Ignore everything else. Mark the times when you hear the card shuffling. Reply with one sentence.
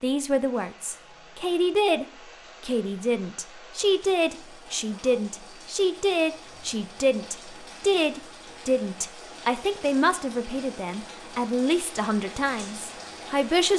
The card shuffling can't be heard in this clip.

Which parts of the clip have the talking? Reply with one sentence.
The talking can be heard from 0.0 to 13.7 s.